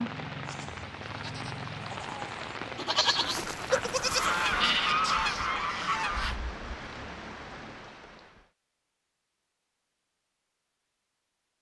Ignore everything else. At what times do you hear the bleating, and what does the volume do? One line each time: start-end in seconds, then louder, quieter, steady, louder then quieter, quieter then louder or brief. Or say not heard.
0.5-6.3 louder then quieter.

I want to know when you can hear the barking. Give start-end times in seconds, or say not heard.
3.2-4.7.